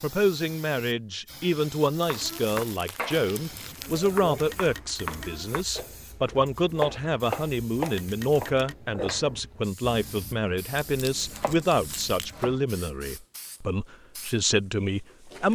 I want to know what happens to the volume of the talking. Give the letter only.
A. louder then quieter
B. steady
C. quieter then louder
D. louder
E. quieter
B.